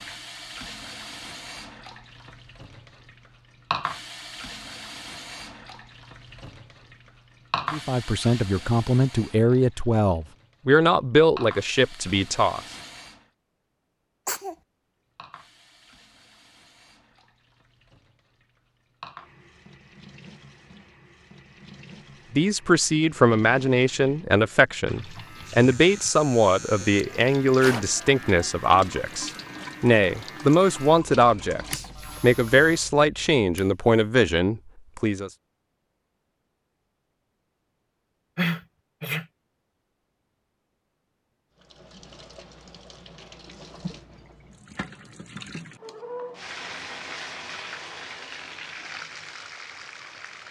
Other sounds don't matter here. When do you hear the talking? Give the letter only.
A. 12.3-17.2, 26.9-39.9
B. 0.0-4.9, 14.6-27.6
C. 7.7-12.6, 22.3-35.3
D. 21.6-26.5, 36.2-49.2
C.